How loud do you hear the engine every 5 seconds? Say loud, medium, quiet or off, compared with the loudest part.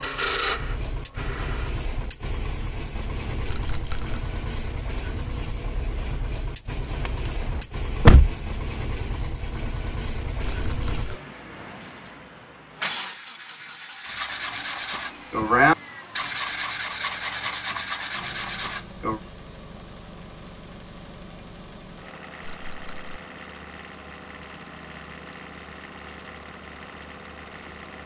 loud, loud, loud, medium, medium, medium.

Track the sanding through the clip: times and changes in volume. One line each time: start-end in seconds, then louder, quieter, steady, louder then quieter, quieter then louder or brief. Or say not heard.
0.0-1.8 brief
14.1-19.2 louder then quieter.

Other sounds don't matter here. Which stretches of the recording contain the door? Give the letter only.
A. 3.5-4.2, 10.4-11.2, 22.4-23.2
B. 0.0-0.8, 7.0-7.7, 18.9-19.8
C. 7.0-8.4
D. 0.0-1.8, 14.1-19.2
C.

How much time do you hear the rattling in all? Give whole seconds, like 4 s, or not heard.
2 s.